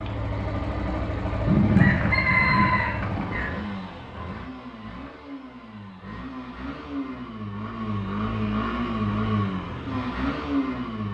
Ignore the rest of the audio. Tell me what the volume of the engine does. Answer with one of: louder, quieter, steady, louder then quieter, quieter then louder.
quieter then louder.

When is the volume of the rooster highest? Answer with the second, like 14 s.
2 s.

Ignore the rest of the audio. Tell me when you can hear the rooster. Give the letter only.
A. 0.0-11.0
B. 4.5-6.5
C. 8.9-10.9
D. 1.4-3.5
D.